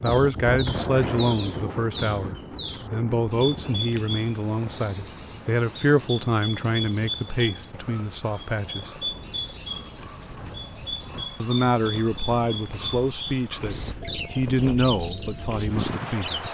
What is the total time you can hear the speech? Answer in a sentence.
The speech can be heard for 14 seconds in total.